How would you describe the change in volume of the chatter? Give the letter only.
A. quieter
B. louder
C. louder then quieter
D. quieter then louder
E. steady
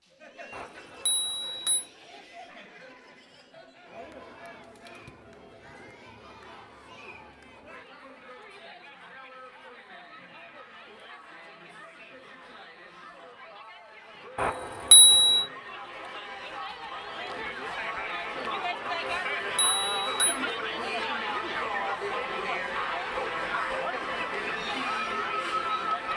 B.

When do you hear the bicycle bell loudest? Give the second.
15 s.